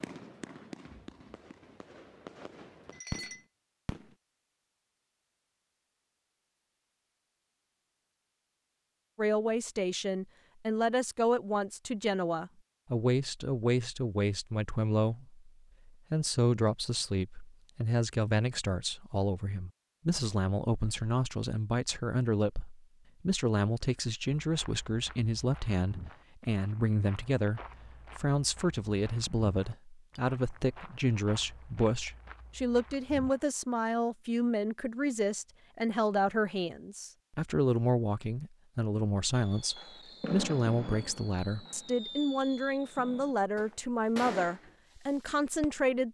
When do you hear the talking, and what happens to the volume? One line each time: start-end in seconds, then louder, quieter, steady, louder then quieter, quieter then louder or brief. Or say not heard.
9.2-46.0 steady.